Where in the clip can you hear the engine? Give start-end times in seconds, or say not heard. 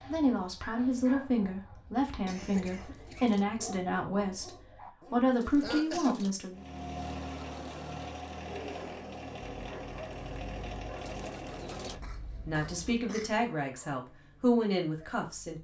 6.5-12.9.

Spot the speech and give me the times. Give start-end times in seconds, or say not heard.
0.1-6.6, 12.4-15.5.